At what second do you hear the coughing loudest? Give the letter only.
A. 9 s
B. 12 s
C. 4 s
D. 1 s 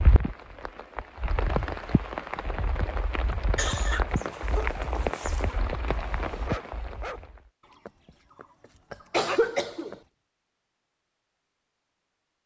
A.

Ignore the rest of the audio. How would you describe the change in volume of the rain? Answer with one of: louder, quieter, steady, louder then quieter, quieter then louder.
steady.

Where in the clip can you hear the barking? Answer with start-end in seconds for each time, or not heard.
4.0-10.0.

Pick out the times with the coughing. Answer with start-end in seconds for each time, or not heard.
3.3-4.0, 8.9-9.9.